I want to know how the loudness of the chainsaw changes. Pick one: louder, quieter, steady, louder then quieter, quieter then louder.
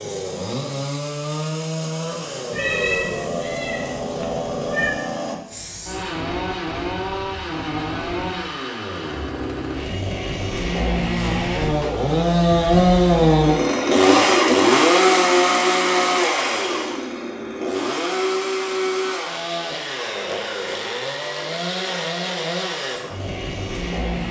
louder then quieter.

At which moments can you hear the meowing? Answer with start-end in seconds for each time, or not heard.
2.5-5.0.